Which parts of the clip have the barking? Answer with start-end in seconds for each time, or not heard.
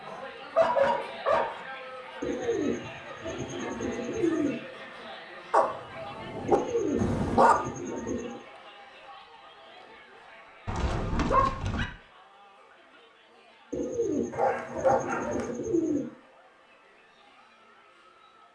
0.1-1.6, 5.5-7.5, 10.7-11.8, 14.3-15.5.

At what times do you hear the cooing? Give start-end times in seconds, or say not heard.
2.2-4.6, 6.5-8.4, 13.7-16.1.